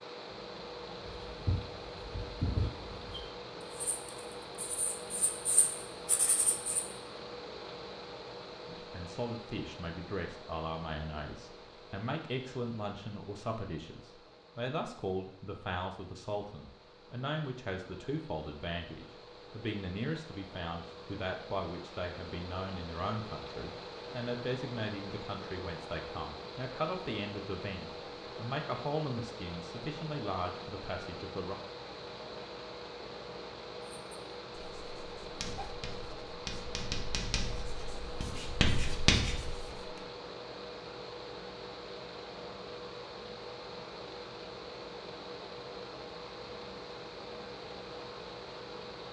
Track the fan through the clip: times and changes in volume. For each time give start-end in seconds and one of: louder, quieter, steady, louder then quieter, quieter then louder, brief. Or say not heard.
0.0-49.0 quieter then louder.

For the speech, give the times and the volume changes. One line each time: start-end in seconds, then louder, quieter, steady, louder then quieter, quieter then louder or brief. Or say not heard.
8.7-31.6 steady.